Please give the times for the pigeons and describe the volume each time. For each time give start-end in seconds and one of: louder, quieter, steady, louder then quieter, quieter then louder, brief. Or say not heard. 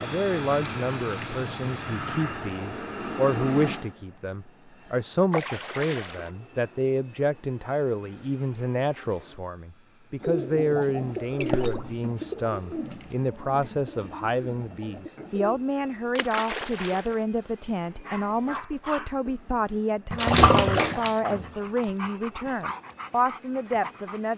10.2-15.6 quieter.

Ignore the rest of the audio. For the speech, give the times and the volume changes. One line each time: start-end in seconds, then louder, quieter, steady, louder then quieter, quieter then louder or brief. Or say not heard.
0.0-24.3 steady.